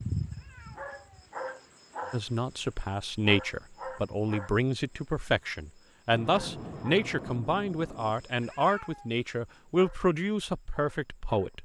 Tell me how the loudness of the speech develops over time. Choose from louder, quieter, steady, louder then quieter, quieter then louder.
steady.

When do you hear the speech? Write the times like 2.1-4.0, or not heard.
2.1-11.6.